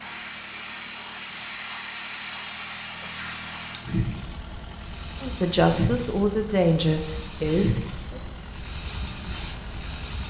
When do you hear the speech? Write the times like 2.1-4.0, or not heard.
5.2-7.8.